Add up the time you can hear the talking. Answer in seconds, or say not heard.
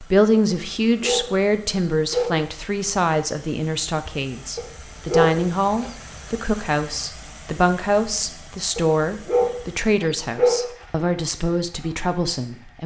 13 s.